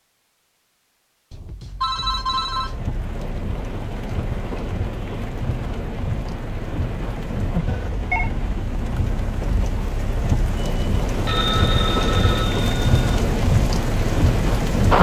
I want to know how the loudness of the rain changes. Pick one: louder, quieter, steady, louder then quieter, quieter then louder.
louder.